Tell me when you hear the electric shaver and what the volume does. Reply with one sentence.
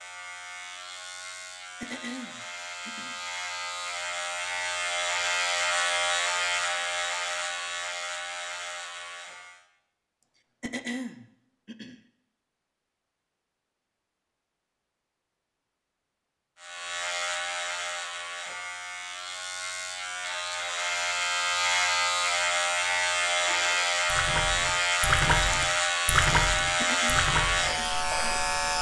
You can hear the electric shaver from 0.0 to 9.7 s, getting louder then quieter; and from 16.6 to 28.7 s, getting louder.